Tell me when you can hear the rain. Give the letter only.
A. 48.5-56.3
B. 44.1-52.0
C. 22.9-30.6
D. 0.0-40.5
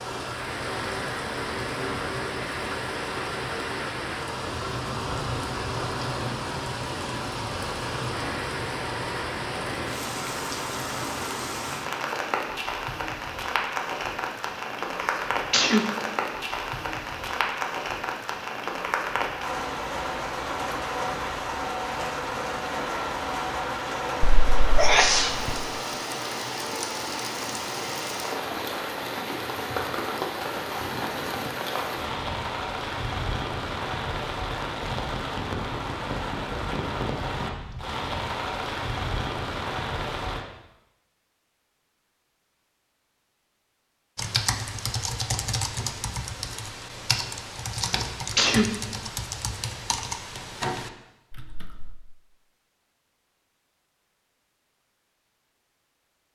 D.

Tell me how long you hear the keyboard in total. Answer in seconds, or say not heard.
8 s.